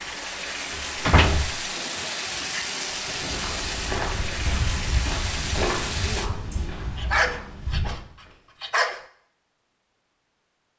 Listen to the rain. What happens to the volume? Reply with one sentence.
The volume of the rain stays about the same.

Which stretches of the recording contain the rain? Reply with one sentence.
You can hear the rain from 0.0 to 6.3 s.